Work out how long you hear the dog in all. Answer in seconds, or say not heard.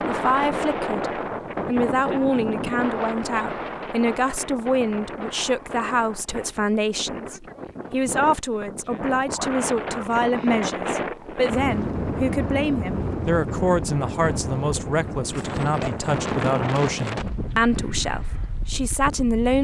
not heard.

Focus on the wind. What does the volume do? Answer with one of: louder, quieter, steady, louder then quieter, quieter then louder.
quieter then louder.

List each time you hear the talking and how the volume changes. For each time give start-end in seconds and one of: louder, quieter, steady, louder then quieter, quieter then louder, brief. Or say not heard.
0.0-19.5 steady.